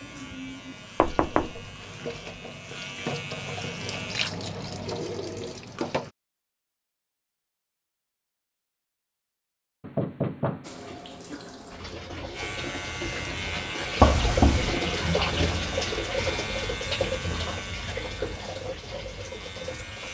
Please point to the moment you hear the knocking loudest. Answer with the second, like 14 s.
14 s.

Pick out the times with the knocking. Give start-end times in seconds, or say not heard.
1.0-1.5, 9.8-11.4, 14.0-14.8.